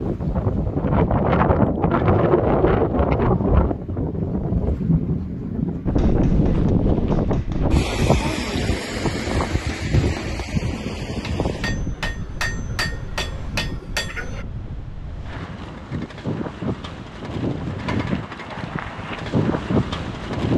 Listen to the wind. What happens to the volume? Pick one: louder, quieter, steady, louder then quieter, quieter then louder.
quieter then louder.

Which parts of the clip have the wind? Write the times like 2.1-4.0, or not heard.
0.0-20.5.